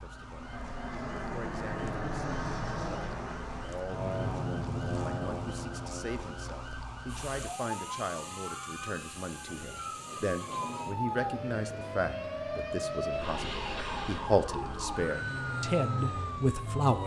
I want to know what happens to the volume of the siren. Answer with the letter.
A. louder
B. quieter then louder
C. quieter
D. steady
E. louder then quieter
A.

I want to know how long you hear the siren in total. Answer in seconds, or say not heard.
17 s.